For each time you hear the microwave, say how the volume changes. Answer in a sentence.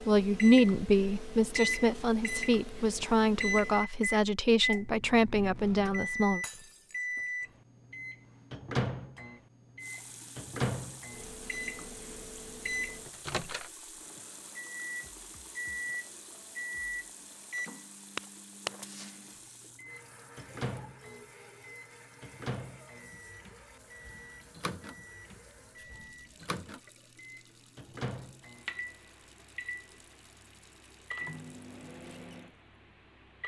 The microwave can be heard from 0.0 to 33.4 s, getting quieter.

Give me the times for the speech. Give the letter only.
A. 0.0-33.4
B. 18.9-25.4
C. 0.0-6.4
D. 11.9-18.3
C.